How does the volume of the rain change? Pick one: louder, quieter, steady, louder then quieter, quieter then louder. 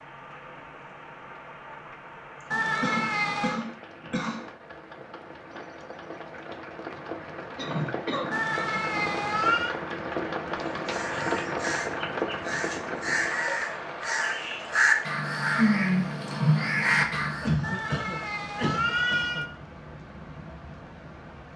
louder then quieter.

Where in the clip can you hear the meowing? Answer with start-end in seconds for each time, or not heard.
2.5-3.6, 8.3-9.8, 17.6-19.5.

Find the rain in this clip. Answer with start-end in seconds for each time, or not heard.
0.0-21.5.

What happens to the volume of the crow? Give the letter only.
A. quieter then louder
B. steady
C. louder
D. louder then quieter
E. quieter
C.